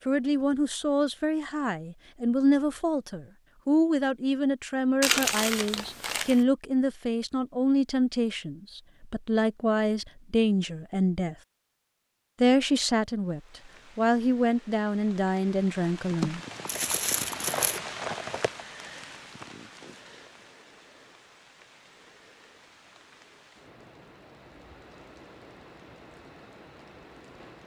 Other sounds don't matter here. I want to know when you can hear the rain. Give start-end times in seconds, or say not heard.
13.2-27.6.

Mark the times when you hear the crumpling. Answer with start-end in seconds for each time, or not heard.
5.0-6.5, 16.6-17.8.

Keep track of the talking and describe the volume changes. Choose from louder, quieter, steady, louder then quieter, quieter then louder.
steady.